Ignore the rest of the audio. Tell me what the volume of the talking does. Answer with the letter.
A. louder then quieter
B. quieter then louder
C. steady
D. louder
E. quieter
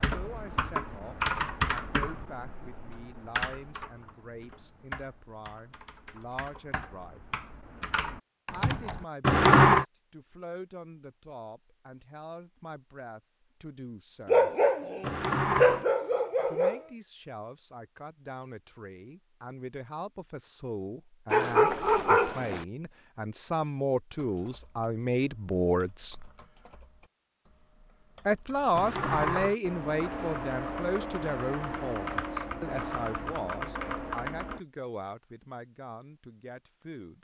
A.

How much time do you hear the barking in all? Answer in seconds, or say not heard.
4 s.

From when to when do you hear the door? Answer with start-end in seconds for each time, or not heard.
9.2-9.8, 15.0-15.8, 28.8-29.6.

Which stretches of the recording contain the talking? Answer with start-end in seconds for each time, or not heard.
0.0-7.2, 8.5-14.5, 16.4-26.3, 28.2-37.2.